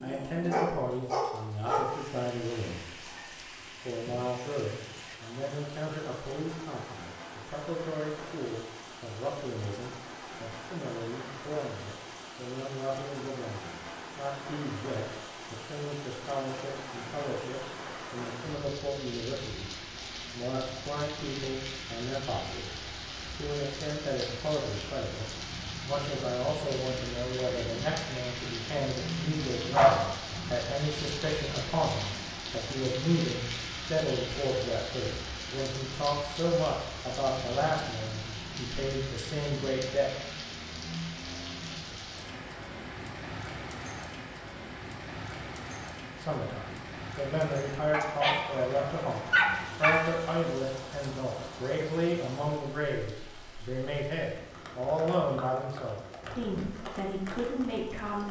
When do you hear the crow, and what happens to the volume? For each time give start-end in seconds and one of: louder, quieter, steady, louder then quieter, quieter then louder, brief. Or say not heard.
not heard.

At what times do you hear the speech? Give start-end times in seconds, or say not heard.
0.0-3.1, 3.9-19.7, 20.3-40.1, 46.1-58.2.